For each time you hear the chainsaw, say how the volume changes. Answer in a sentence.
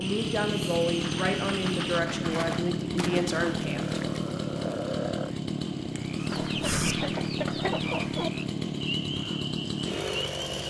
The chainsaw can be heard from 0.0 to 10.6 s, at a steady volume.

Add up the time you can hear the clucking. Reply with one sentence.
You can hear the clucking for 4 seconds altogether.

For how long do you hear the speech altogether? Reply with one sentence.
The speech can be heard for 4 seconds in total.